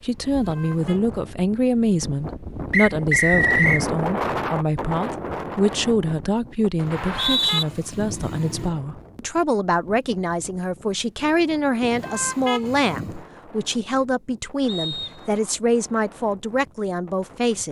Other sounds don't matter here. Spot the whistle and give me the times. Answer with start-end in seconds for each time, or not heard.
2.7-3.9, 6.9-7.7, 14.7-15.4.